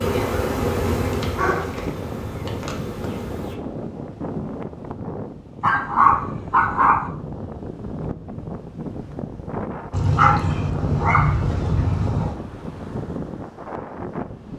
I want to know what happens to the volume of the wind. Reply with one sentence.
The loudness of the wind stays about the same.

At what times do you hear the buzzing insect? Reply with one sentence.
The buzzing insect can be heard from 0.0 to 3.5 s.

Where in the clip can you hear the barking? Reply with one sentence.
The barking can be heard from 1.1 to 3.1 s, from 5.6 to 7.0 s and from 9.9 to 12.3 s.